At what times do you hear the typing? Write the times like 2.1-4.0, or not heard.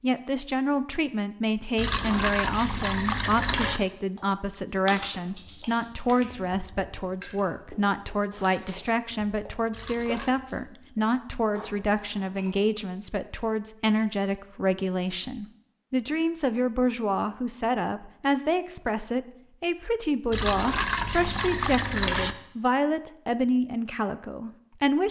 not heard.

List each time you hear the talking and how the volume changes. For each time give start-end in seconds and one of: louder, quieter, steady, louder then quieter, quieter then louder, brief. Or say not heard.
0.0-25.0 steady.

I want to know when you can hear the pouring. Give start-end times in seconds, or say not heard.
1.8-3.8, 9.7-10.3, 20.3-22.4.